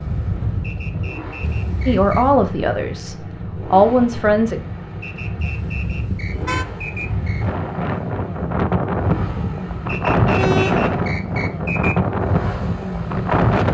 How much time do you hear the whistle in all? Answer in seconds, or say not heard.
6 s.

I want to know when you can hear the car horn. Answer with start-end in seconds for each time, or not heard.
1.4-2.4, 5.3-6.8, 10.3-10.9.